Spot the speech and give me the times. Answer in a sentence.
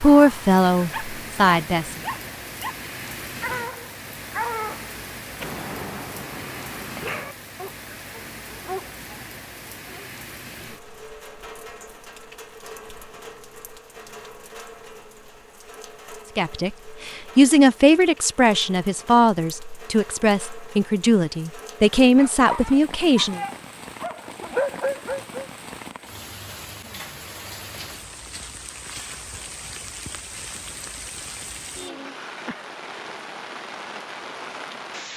The speech can be heard from 0.0 to 1.9 s and from 16.4 to 23.4 s.